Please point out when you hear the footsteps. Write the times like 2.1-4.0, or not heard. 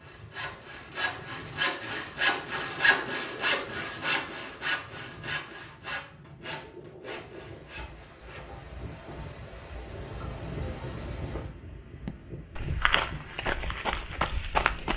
12.1-14.9.